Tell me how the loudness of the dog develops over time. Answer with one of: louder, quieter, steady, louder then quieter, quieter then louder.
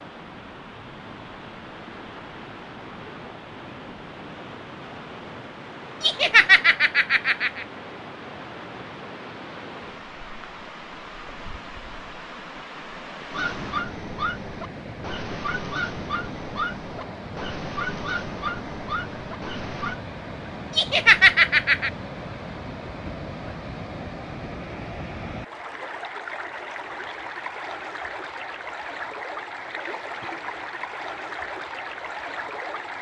steady.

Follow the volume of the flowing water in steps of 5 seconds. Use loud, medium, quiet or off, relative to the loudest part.
medium, medium, medium, loud, loud, loud, loud.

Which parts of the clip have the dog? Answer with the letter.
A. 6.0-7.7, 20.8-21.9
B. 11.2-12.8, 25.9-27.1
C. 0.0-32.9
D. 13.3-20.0
D.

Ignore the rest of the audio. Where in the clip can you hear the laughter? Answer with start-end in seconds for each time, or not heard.
6.0-7.7, 20.8-21.9.